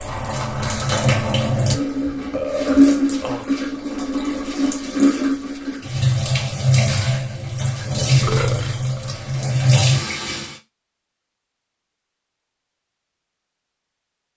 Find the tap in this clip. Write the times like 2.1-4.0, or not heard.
0.0-10.6.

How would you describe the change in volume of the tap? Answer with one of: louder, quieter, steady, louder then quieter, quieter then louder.
steady.